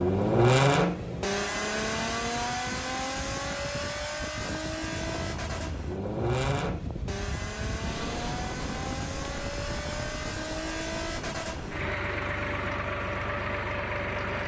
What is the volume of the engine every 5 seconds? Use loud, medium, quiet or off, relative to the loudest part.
loud, medium, medium.